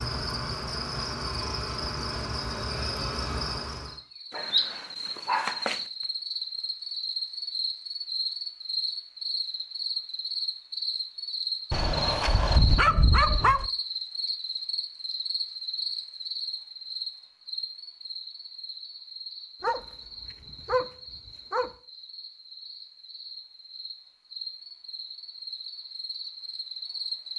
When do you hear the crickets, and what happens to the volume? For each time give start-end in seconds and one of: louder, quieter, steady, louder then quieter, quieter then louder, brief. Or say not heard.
0.0-27.3 quieter.